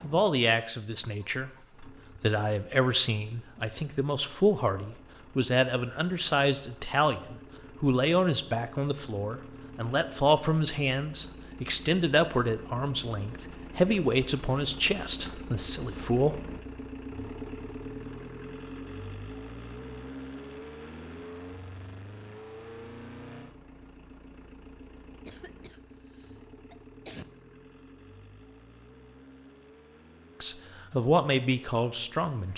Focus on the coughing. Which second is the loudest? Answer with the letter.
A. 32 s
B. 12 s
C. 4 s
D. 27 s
D.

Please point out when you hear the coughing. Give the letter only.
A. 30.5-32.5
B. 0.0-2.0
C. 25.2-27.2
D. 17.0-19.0
C.